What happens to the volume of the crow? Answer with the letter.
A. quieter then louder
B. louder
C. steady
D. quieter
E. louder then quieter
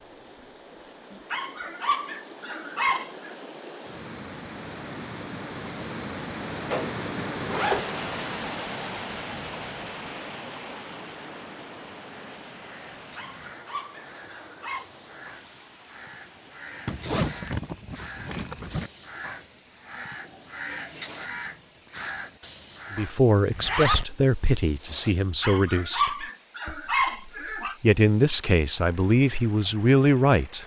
B.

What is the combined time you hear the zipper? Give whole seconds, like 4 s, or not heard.
4 s.